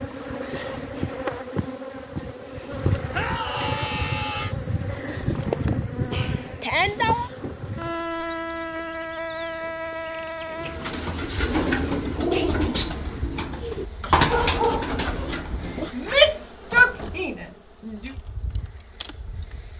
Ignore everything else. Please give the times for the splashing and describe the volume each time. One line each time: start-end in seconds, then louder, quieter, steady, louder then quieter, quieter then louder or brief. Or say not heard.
not heard.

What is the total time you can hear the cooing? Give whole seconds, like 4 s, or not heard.
5 s.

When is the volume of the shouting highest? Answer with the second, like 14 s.
16 s.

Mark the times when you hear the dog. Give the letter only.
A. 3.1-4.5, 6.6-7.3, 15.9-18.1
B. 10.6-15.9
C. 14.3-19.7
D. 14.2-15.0
D.